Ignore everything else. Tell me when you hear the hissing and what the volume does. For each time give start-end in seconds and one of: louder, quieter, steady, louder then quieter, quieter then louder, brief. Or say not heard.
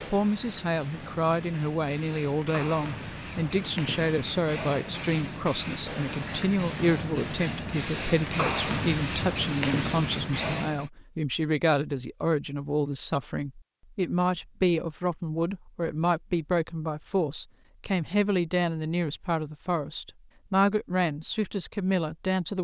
0.0-10.9 louder.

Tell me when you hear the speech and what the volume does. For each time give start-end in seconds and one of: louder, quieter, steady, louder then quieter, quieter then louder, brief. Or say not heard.
0.1-22.5 steady.